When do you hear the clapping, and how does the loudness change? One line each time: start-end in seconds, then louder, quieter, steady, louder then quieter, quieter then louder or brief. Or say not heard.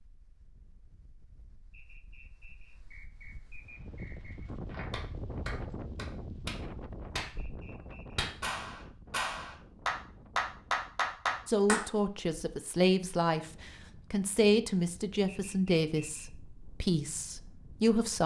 4.7-11.8 louder.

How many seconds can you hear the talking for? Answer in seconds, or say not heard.
7 s.